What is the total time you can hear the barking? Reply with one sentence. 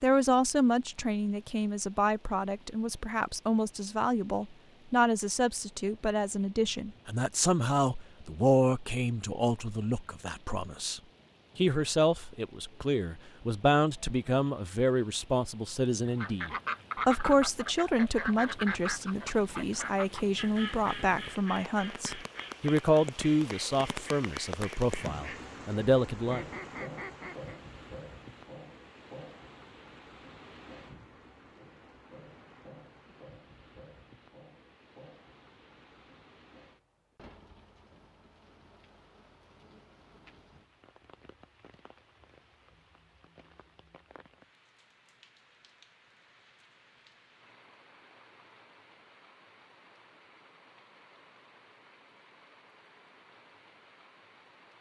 The barking can't be heard in this clip.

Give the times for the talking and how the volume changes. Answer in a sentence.
You can hear the talking from 0.0 to 26.4 s, at a steady volume.